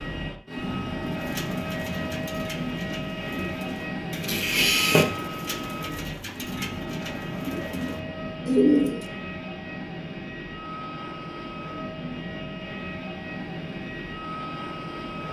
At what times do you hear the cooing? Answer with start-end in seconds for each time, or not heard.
1.1-9.0.